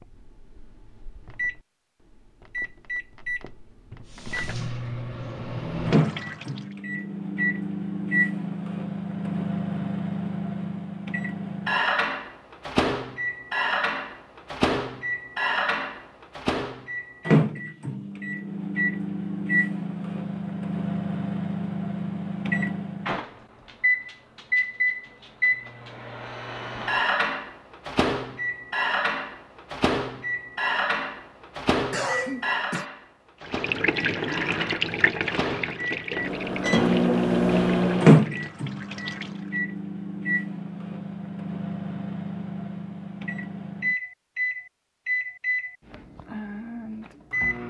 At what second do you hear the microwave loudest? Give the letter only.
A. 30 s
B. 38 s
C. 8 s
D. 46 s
B.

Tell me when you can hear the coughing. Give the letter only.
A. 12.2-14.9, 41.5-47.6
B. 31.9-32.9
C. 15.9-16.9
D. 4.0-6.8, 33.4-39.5
B.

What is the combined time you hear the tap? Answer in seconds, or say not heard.
9 s.